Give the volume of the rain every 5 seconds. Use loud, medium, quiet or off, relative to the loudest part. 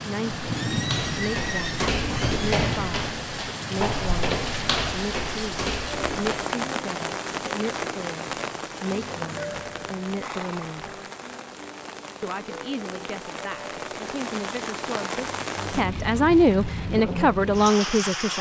loud, loud, medium, loud.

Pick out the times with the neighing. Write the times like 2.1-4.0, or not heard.
0.6-2.5, 9.3-10.8.